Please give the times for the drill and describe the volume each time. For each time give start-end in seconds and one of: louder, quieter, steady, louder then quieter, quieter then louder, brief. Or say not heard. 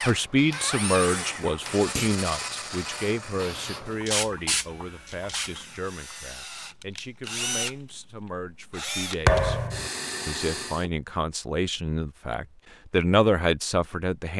0.0-10.9 quieter then louder.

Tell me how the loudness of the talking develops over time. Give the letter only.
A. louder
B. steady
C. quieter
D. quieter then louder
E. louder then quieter
D.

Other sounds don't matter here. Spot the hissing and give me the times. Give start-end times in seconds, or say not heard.
0.0-5.7.